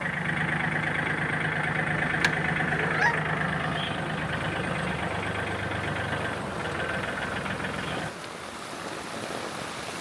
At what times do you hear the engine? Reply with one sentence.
The engine can be heard from 0.0 to 8.2 s.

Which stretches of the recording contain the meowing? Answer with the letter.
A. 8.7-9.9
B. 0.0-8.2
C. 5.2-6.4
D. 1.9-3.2
D.